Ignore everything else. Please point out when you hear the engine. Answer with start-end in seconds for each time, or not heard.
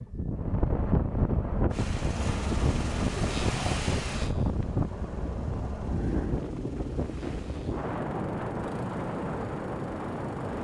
1.7-10.5.